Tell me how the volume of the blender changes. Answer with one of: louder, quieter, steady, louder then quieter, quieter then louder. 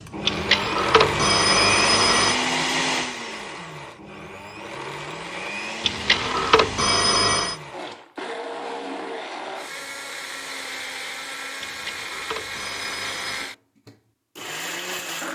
quieter.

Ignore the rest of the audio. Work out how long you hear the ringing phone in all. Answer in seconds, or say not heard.
6 s.